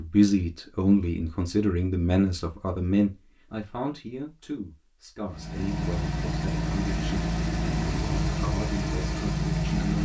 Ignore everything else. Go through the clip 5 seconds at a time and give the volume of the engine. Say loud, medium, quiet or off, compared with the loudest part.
off, loud.